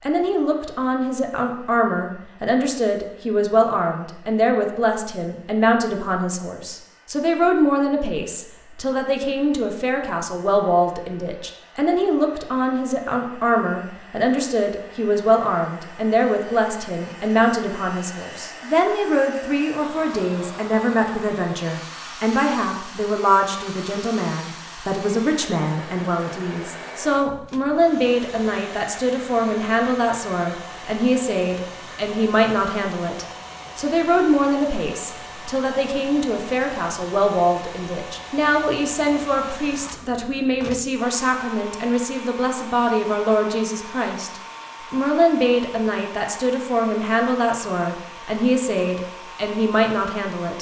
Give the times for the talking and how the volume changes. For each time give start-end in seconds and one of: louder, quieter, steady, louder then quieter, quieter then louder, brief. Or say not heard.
0.0-50.5 steady.